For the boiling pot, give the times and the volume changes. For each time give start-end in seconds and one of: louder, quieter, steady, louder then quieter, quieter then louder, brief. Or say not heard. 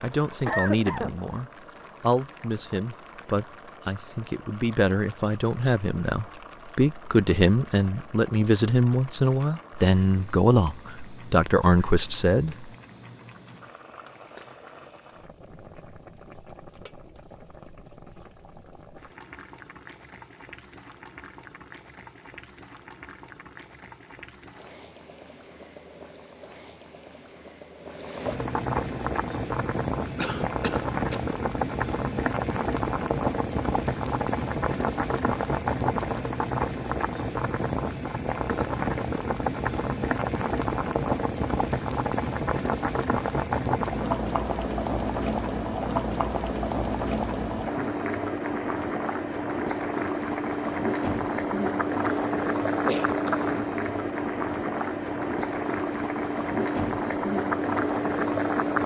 0.0-58.8 louder.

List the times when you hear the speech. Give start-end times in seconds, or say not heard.
0.0-12.7.